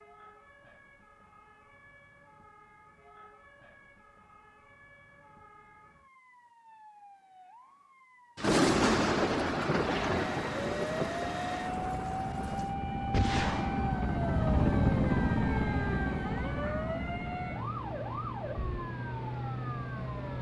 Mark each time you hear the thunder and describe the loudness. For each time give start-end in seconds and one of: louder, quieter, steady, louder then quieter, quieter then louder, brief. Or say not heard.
8.3-12.7 quieter.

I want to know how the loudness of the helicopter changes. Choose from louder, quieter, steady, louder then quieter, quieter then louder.
louder then quieter.